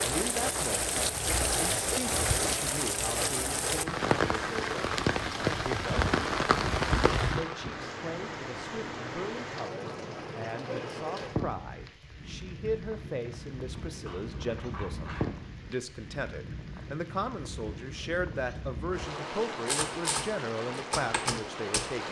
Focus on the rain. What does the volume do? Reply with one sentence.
The volume of the rain goes down.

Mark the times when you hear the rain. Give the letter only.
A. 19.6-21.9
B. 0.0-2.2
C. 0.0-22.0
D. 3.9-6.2
C.